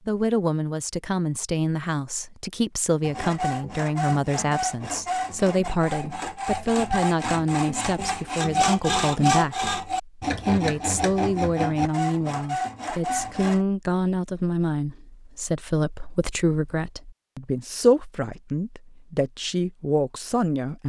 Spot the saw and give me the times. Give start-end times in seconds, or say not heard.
3.0-13.7.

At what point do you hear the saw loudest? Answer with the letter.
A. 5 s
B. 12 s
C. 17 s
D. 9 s
D.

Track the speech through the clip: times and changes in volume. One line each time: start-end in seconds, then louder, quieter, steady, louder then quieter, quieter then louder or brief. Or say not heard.
0.1-20.8 steady.